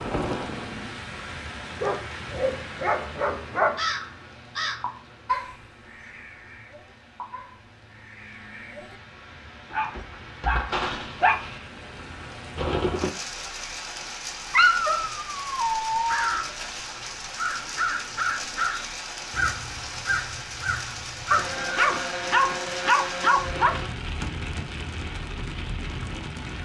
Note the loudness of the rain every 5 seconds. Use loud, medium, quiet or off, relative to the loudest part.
loud, quiet, loud, loud, loud, loud.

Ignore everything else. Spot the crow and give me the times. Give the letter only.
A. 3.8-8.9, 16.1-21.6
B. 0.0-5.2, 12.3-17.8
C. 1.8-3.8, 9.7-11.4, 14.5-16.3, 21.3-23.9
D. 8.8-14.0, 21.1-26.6
A.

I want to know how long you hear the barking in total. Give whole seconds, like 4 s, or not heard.
8 s.